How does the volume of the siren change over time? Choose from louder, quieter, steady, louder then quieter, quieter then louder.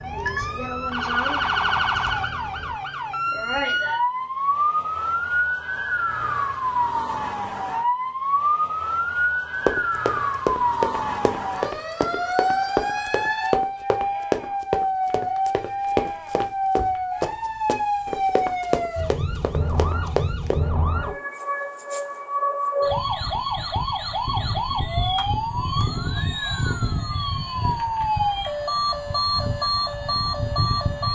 steady.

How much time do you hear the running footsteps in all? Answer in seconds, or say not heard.
11 s.